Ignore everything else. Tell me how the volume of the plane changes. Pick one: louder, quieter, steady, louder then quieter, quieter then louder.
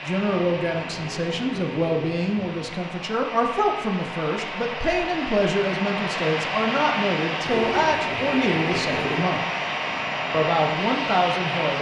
louder.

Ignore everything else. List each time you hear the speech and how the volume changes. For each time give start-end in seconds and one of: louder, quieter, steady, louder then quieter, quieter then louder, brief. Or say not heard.
0.0-9.4 steady
10.3-11.7 brief.